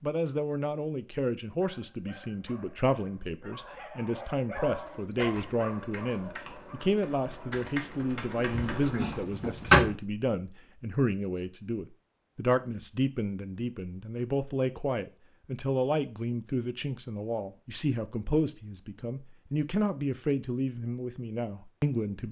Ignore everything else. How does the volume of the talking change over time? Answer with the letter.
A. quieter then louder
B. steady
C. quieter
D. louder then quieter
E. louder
B.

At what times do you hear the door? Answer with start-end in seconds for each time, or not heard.
8.5-9.9.